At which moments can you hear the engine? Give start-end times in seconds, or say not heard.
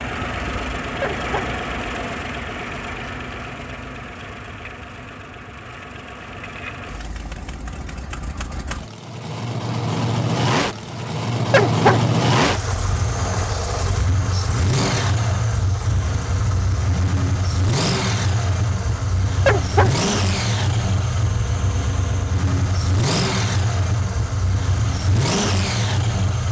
0.0-26.4.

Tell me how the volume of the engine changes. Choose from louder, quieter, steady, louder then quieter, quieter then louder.
louder.